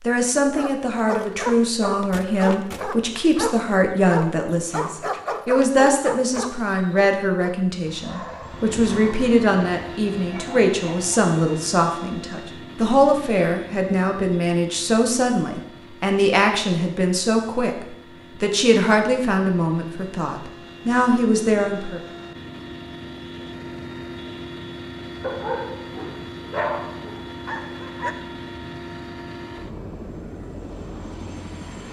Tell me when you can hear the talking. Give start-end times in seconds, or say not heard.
0.0-22.0.